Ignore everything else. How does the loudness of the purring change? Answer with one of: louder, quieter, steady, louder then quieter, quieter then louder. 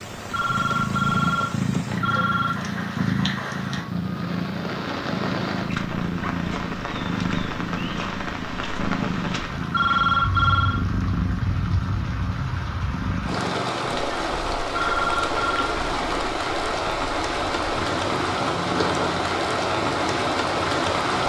quieter.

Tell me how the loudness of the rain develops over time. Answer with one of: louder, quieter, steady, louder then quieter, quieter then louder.
louder.